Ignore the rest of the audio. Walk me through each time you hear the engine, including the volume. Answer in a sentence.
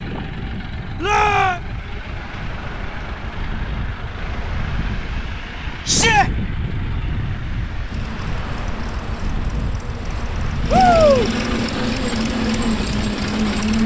You can hear the engine from 0.0 to 13.8 s, getting louder.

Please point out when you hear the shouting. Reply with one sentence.
The shouting can be heard from 1.0 to 1.6 s, from 5.8 to 6.3 s and from 10.7 to 11.3 s.